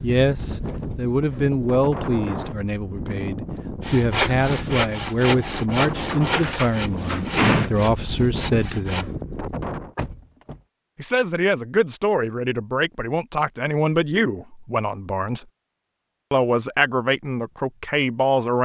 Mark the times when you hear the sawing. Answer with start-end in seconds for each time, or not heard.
3.8-9.1.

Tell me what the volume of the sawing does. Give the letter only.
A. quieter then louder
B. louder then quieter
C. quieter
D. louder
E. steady
C.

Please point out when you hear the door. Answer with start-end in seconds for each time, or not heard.
6.2-7.7, 9.9-10.6.